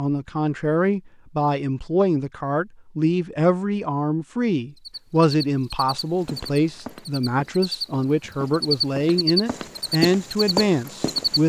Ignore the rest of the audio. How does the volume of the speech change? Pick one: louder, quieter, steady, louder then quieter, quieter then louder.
steady.